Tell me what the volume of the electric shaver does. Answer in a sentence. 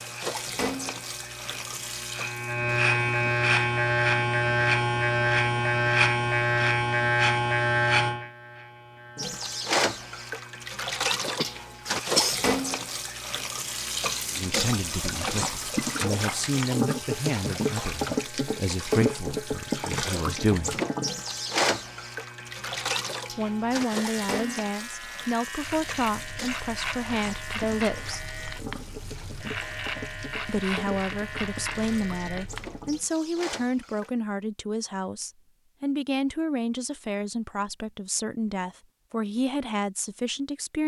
The loudness of the electric shaver goes down, then up.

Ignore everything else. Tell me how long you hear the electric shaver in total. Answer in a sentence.
You can hear the electric shaver for 33 seconds altogether.